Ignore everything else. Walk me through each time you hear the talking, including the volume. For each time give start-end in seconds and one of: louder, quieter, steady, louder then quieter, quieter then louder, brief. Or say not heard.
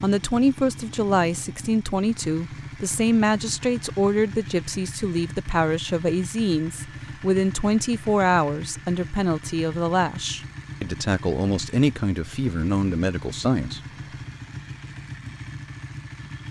0.0-13.8 steady.